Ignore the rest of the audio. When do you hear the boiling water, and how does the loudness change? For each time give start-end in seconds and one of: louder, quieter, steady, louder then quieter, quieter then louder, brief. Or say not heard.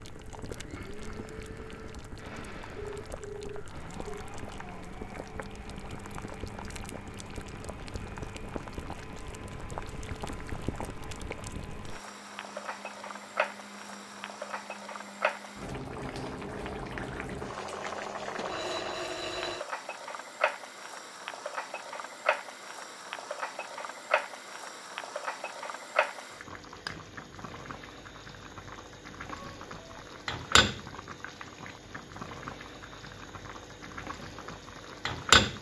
0.0-35.5 louder.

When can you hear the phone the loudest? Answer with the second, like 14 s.
19 s.